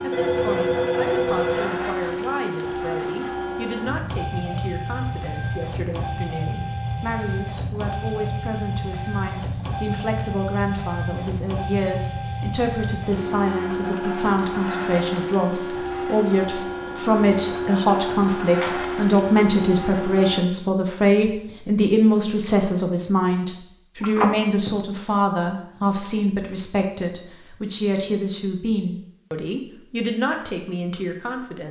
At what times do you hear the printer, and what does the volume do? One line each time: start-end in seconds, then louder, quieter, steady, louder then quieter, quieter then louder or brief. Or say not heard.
0.0-20.4 steady.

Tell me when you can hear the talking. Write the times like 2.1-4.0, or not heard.
0.0-31.6.